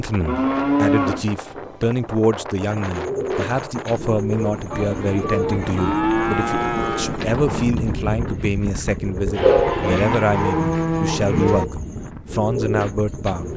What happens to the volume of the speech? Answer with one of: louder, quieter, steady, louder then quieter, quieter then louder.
steady.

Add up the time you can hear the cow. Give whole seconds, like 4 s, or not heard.
5 s.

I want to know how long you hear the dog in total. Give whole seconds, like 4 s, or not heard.
2 s.